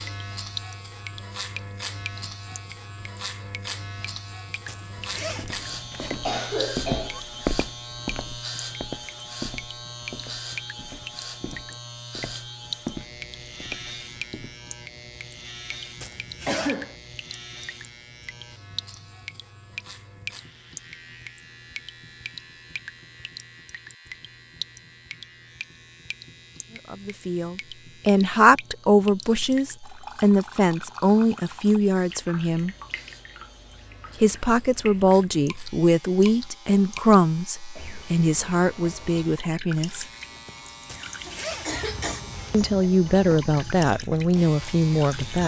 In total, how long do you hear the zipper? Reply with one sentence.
The zipper can be heard for 3 seconds in total.